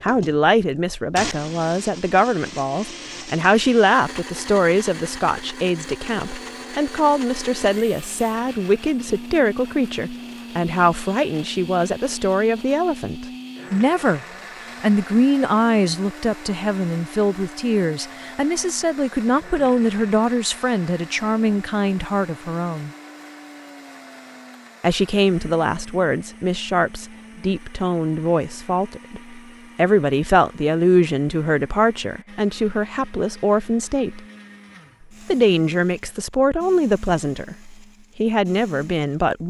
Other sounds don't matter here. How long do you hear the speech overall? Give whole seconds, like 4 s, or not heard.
36 s.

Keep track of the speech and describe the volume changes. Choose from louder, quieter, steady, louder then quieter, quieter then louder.
steady.